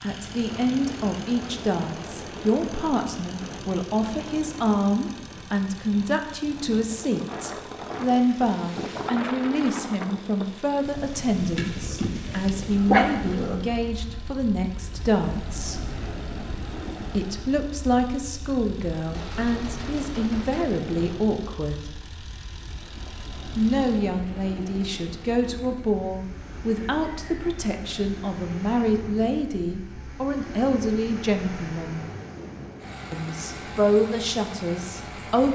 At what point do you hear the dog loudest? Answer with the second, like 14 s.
13 s.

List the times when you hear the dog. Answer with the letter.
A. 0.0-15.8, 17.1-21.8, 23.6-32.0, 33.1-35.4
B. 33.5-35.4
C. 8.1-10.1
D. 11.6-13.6
D.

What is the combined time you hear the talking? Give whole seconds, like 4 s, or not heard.
31 s.